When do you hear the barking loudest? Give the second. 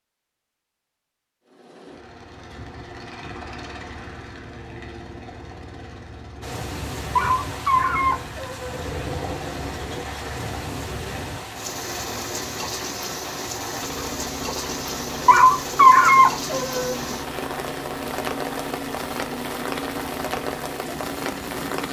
16 s.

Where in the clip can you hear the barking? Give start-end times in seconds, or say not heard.
7.2-8.8, 15.2-16.9.